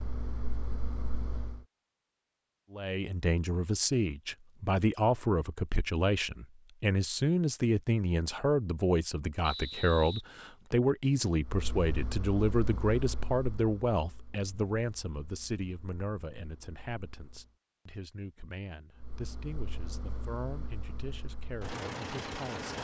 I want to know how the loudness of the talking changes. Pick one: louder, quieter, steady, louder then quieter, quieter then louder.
quieter.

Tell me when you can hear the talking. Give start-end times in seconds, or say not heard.
2.7-22.7.